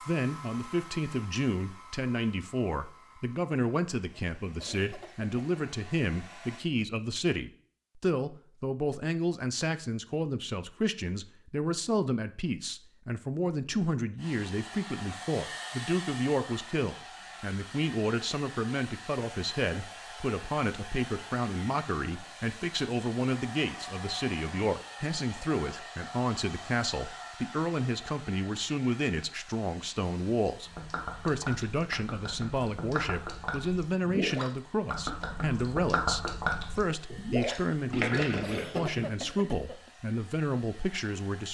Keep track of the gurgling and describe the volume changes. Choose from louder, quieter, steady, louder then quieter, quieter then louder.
louder.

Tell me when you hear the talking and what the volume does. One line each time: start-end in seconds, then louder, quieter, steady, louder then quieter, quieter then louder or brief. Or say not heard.
0.1-41.4 steady.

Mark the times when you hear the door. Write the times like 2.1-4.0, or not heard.
not heard.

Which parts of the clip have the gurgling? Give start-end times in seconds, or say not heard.
30.6-39.5.